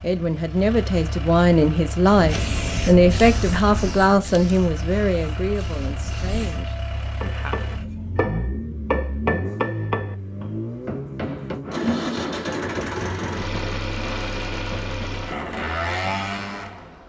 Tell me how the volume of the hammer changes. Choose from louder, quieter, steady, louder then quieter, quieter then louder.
quieter.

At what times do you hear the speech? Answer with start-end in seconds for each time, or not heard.
0.0-7.5.